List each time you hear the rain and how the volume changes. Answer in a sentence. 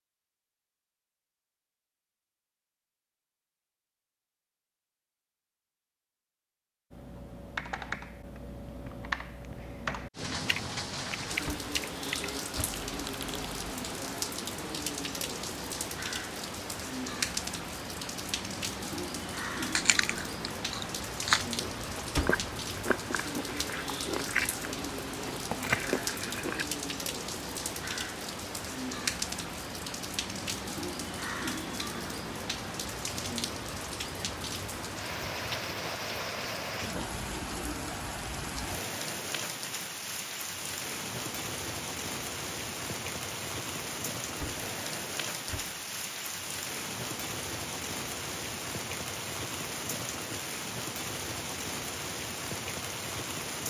The rain can be heard from 10.2 to 53.6 s, at a steady volume.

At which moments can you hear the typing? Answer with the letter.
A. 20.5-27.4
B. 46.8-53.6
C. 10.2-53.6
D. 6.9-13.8
D.